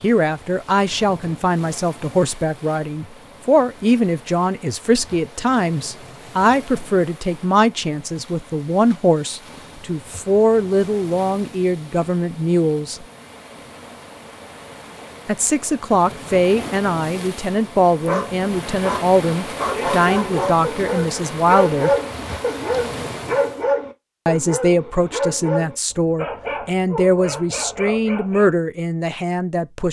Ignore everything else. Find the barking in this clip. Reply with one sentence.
You can hear the barking from 18.1 to 28.5 s.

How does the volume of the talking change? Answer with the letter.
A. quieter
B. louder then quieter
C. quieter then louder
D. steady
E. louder
D.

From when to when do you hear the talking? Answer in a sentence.
The talking can be heard from 0.0 to 13.1 s, from 15.2 to 21.9 s and from 24.2 to 29.8 s.